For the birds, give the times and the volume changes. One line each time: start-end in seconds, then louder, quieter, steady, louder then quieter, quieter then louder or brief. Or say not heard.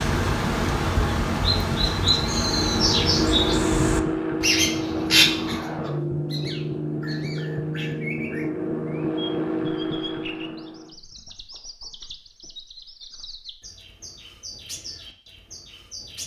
0.0-16.2 quieter.